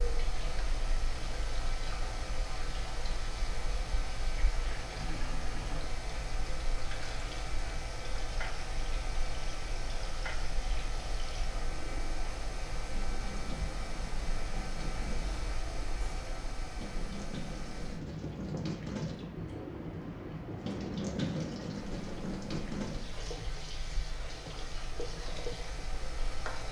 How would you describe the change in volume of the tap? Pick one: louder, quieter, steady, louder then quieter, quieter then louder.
louder.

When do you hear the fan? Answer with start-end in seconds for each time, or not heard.
0.0-26.6.